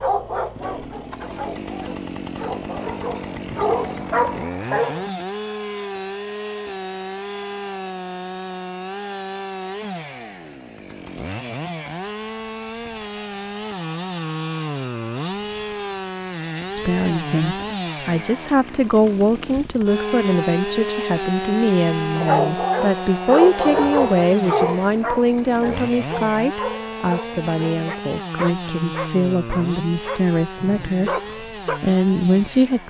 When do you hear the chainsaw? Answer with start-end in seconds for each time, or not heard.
0.0-32.8.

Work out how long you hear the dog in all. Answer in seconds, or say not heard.
15 s.